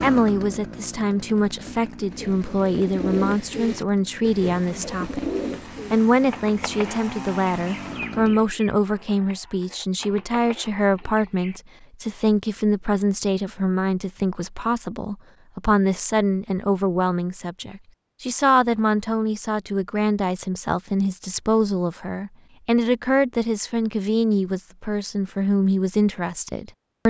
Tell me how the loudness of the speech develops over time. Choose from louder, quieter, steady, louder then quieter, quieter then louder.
steady.